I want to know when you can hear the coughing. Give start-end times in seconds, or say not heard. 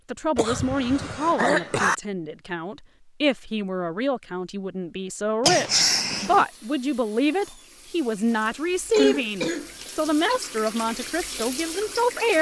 0.3-1.9, 5.4-6.5, 8.9-10.4.